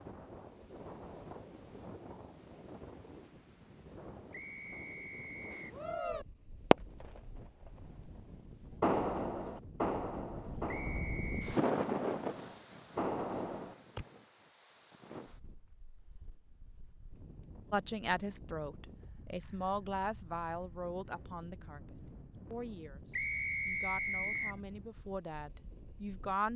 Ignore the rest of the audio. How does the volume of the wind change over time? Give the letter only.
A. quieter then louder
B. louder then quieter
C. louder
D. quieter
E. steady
B.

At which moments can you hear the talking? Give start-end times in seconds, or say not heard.
17.7-26.5.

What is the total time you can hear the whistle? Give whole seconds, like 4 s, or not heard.
4 s.